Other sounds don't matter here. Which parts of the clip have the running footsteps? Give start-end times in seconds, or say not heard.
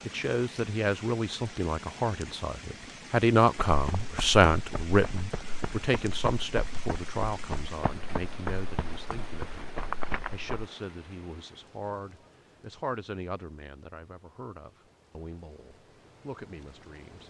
3.6-10.7.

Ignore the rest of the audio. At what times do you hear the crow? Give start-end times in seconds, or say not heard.
not heard.